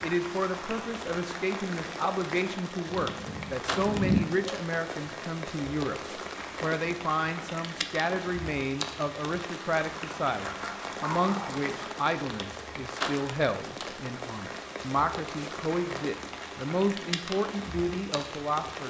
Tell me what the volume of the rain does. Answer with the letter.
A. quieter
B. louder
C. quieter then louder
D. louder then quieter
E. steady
E.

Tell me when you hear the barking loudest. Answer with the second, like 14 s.
4 s.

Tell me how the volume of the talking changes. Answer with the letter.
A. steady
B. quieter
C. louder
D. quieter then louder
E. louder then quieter
A.